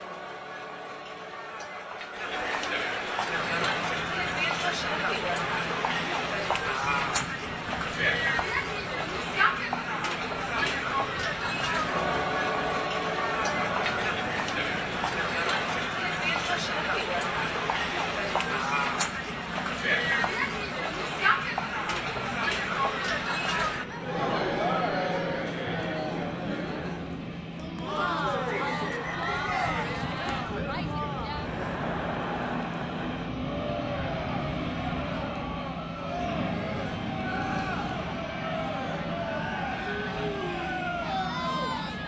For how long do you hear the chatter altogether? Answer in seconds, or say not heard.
42 s.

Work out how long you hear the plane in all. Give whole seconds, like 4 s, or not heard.
39 s.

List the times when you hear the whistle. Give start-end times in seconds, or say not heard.
28.4-30.2.